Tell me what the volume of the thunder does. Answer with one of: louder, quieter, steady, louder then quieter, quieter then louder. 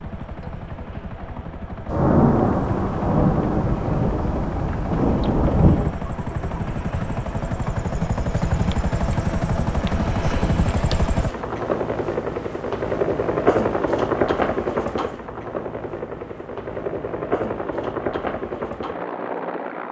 quieter then louder.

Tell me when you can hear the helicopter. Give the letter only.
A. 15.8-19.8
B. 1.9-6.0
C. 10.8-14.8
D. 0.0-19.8
D.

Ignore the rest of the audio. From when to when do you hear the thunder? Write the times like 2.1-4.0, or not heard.
1.9-6.0.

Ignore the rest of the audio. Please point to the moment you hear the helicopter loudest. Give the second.
14 s.